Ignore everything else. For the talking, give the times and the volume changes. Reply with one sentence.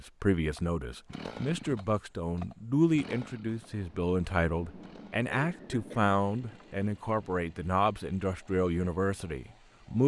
The talking can be heard from 0.0 to 10.0 s, at a steady volume.